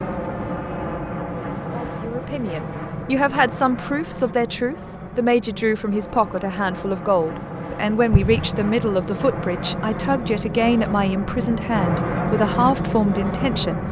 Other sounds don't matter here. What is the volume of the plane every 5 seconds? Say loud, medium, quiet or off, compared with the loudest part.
medium, medium, loud.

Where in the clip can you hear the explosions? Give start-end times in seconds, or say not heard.
8.1-8.7.